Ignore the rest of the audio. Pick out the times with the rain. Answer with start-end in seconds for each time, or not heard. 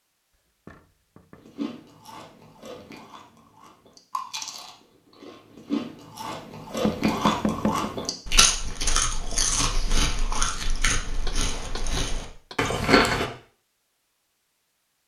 not heard.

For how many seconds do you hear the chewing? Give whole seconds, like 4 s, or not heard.
12 s.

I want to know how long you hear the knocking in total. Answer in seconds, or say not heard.
3 s.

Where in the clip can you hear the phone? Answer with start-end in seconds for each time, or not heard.
not heard.